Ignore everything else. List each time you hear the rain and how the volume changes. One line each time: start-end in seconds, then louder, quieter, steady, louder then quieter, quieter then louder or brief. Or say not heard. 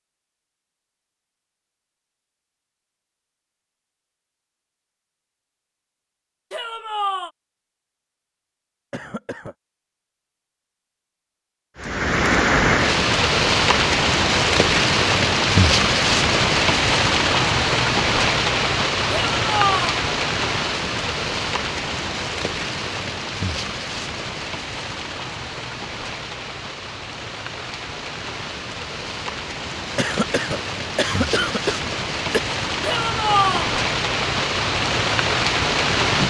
11.8-36.2 quieter then louder.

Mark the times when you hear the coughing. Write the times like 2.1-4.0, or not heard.
8.9-9.6, 29.9-32.4.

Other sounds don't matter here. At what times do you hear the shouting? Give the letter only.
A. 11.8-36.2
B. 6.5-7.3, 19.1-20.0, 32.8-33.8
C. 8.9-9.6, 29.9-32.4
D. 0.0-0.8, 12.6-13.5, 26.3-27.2
B.